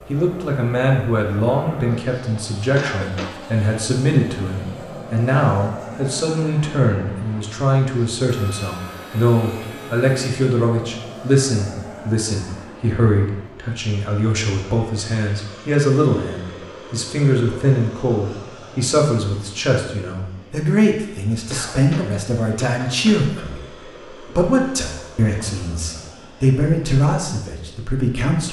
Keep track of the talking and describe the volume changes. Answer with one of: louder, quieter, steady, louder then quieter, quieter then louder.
steady.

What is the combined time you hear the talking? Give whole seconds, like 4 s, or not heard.
28 s.